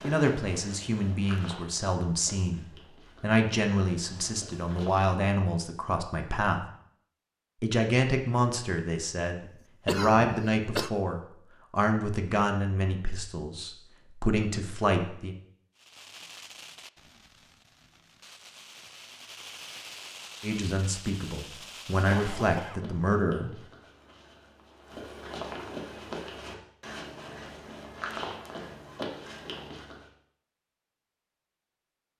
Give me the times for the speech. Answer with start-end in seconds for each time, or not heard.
0.0-6.7, 7.6-15.3, 20.4-23.5.